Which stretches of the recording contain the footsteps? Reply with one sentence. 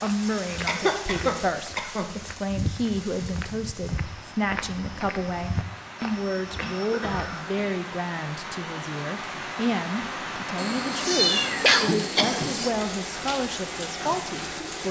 The footsteps can be heard from 0.0 to 7.4 s.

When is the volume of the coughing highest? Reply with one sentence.
The volume of the coughing peaks at 12 seconds.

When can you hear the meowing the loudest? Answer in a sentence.
The loudest moment of the meowing is at 11 seconds.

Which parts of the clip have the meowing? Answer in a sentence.
The meowing can be heard from 10.6 to 12.7 s.